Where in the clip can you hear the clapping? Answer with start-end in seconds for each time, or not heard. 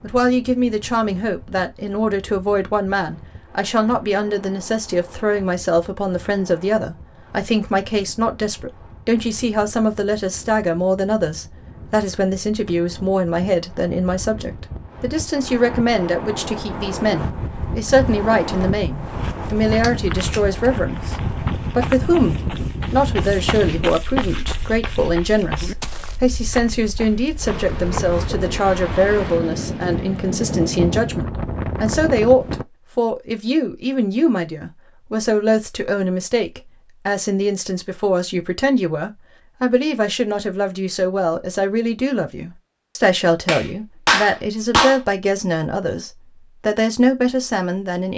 19.8-20.4, 43.5-45.0.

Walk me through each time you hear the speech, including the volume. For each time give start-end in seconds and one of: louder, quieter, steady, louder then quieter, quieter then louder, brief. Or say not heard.
0.0-48.1 steady.